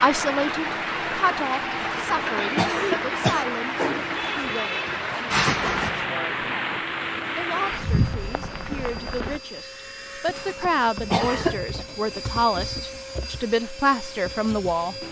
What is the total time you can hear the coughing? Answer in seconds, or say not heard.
4 s.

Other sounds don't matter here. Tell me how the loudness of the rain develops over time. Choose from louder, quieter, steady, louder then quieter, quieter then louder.
steady.